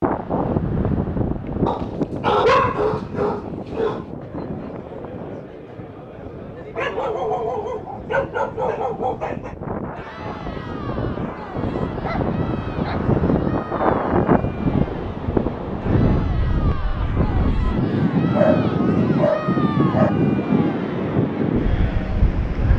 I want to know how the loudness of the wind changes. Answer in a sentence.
The volume of the wind goes down, then up.